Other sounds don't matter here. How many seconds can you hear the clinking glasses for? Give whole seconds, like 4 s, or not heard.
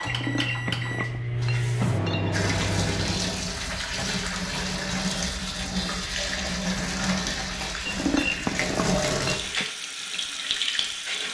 4 s.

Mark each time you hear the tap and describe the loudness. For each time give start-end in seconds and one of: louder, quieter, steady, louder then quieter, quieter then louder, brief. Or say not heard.
2.3-11.2 steady.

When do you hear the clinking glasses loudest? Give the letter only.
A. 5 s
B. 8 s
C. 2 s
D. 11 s
B.